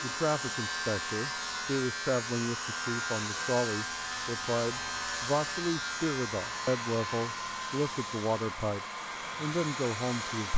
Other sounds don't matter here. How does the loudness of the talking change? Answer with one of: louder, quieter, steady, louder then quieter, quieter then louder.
steady.